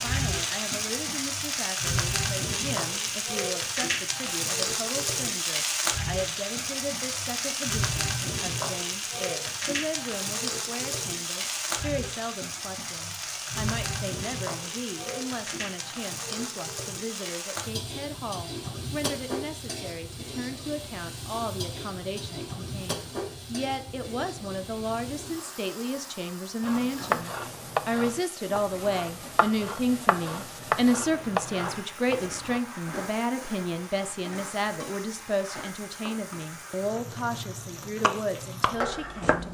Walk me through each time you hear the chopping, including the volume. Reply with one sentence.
The chopping can be heard from 26.6 to 32.6 s, getting quieter then louder; and briefly from 38.0 to 39.4 s.